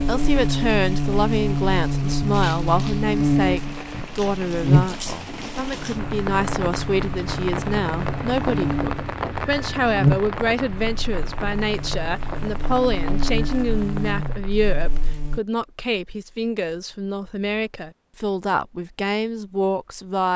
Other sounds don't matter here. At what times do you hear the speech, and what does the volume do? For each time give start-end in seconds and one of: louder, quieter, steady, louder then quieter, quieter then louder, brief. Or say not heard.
0.0-20.3 steady.